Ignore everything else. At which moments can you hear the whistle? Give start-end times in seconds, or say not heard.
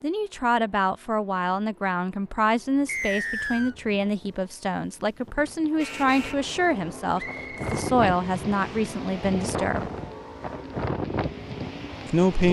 2.9-3.8, 7.2-7.7.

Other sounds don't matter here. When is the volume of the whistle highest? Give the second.
3 s.